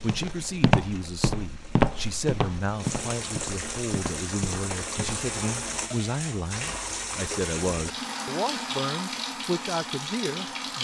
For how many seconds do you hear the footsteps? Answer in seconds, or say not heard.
5 s.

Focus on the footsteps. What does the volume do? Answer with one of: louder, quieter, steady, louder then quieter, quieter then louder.
quieter.